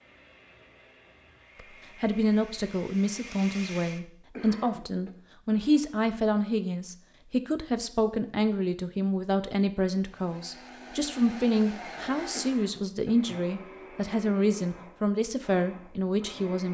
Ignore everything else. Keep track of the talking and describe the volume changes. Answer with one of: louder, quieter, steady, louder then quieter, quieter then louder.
steady.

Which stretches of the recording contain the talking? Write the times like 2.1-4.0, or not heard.
2.0-16.6.